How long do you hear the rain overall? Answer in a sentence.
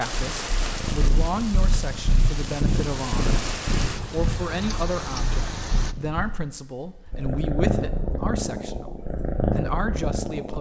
You can hear the rain for 6 seconds altogether.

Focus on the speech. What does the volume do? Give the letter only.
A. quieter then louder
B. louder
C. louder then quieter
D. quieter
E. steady
E.